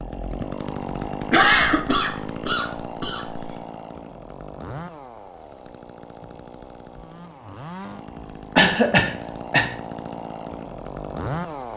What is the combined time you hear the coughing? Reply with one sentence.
The coughing can be heard for 3 seconds in total.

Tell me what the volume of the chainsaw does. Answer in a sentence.
The volume of the chainsaw goes down, then up.